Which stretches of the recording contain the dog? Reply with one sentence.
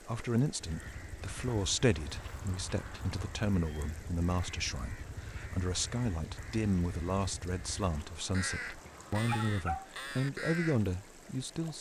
You can hear the dog from 1.9 to 3.5 s and from 7.9 to 9.9 s.